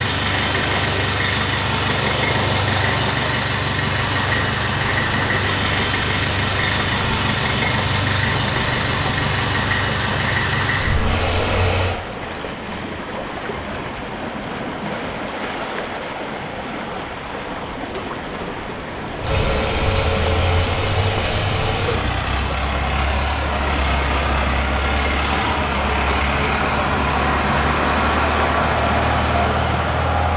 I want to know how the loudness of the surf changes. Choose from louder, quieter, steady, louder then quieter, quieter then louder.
steady.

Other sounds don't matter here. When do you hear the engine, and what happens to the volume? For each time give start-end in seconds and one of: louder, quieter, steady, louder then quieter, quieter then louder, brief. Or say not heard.
0.0-11.9 steady
19.2-30.3 steady.